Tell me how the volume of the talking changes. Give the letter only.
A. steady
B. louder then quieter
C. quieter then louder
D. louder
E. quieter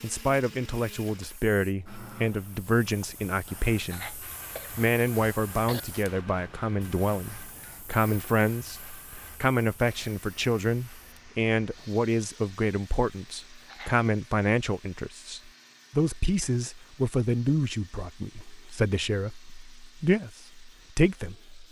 A.